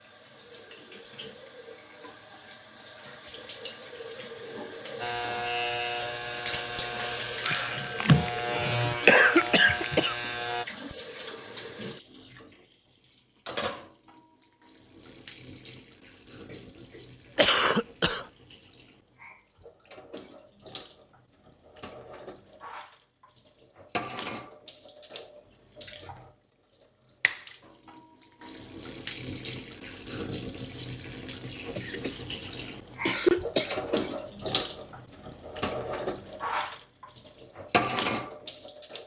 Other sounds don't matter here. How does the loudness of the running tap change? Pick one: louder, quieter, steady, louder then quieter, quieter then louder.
quieter then louder.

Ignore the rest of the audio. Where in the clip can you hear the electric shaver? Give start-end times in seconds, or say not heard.
5.0-10.7.